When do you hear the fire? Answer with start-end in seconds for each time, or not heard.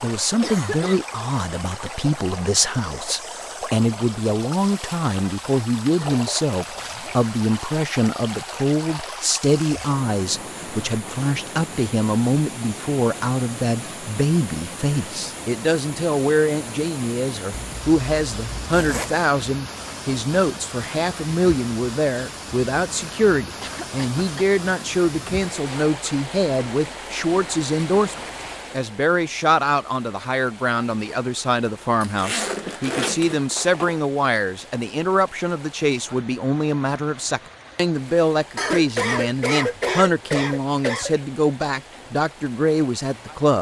not heard.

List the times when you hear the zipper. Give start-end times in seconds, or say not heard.
6.6-7.3, 17.5-19.1, 32.0-34.0.